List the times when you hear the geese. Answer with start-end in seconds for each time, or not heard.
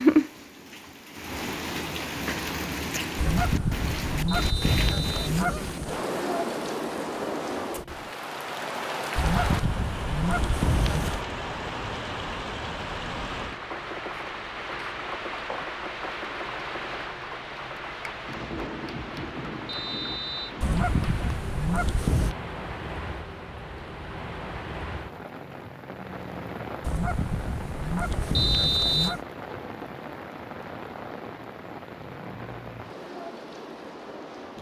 3.1-6.0, 9.2-11.2, 20.6-22.4, 26.8-29.2.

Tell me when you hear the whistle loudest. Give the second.
29 s.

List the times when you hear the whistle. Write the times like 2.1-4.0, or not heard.
4.2-5.2, 19.6-20.6, 28.4-29.1.